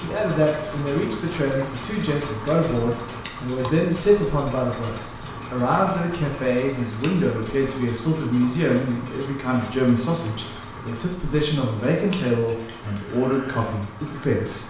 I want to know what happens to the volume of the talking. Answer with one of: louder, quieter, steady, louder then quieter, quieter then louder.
steady.